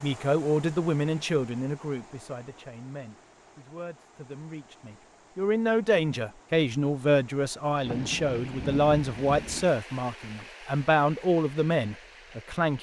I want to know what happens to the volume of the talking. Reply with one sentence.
The volume of the talking goes down, then up.